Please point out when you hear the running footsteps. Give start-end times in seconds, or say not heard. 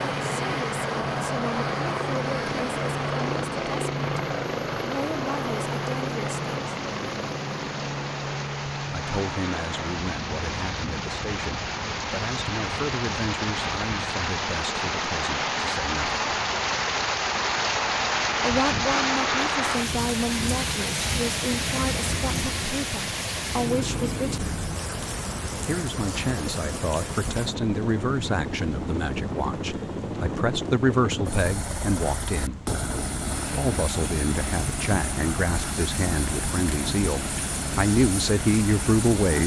not heard.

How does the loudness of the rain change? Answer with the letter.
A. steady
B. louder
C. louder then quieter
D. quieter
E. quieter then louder
C.